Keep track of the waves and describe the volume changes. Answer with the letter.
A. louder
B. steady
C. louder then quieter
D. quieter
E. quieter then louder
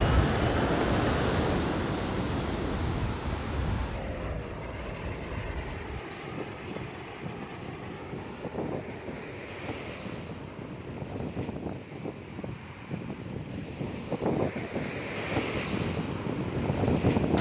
E.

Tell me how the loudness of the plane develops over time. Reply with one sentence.
The loudness of the plane goes down.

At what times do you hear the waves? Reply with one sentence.
You can hear the waves from 0.0 to 17.3 s.